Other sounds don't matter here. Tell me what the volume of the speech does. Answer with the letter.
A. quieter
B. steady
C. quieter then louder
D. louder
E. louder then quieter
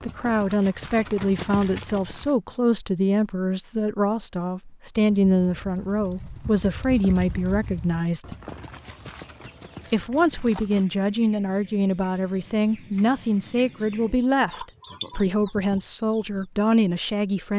B.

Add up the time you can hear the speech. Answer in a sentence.
The speech can be heard for 16 seconds in total.